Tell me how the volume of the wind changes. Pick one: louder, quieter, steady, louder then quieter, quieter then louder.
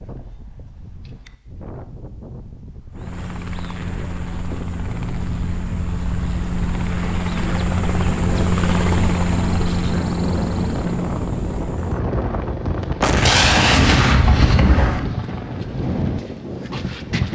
louder.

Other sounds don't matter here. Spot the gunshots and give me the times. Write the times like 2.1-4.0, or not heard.
13.0-15.0.